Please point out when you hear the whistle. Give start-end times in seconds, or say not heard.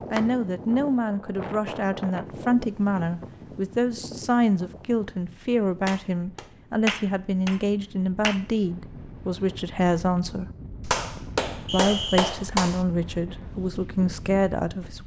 11.7-12.3.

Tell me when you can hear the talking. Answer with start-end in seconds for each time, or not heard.
0.1-10.5, 11.7-15.0.